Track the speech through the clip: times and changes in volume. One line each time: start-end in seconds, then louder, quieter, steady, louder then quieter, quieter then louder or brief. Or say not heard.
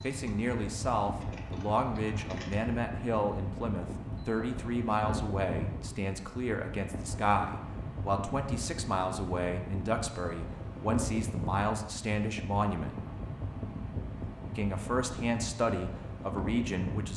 0.0-13.1 steady
14.6-17.1 brief.